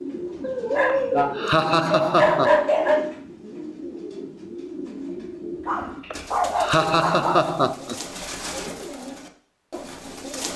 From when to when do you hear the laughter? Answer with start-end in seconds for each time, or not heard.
0.8-2.5, 6.0-8.0.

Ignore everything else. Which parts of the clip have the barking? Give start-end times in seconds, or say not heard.
0.4-3.0, 5.7-7.4.